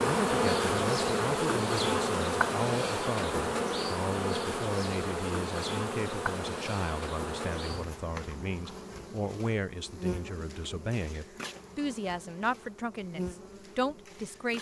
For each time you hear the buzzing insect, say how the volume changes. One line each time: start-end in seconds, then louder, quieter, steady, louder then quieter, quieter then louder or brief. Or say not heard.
0.0-14.5 quieter.